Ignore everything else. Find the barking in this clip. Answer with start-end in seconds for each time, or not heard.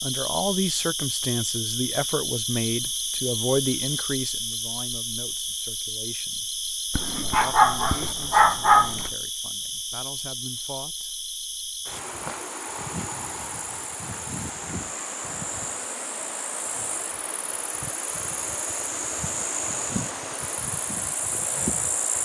6.9-9.1.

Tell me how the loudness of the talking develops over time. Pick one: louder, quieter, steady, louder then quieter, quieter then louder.
quieter.